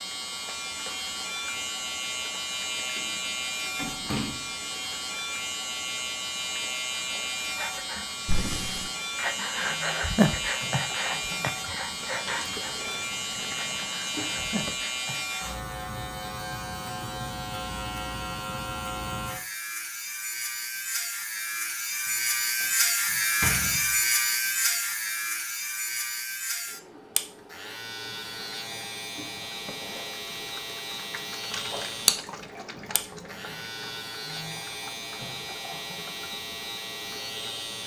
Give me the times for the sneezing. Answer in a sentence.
The sneezing can't be heard in this clip.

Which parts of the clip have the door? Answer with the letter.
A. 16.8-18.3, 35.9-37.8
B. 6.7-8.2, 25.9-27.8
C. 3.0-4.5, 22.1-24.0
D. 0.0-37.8
C.